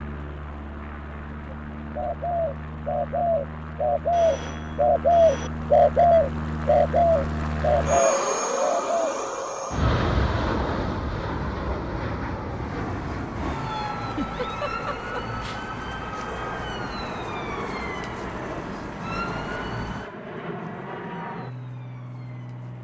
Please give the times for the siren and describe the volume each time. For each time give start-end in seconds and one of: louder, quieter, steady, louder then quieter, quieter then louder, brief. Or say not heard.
12.7-22.7 quieter.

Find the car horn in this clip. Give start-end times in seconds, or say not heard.
not heard.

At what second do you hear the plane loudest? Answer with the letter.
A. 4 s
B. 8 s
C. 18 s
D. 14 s
B.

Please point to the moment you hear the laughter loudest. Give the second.
14 s.